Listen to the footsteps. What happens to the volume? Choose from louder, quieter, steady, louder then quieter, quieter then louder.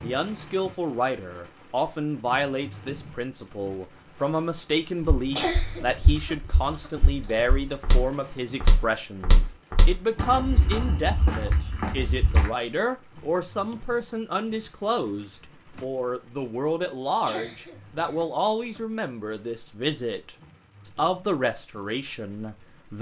louder.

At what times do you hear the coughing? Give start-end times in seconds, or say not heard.
5.3-7.3, 17.2-18.8.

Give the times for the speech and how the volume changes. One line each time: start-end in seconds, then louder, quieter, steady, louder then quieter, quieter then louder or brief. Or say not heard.
0.0-22.9 steady.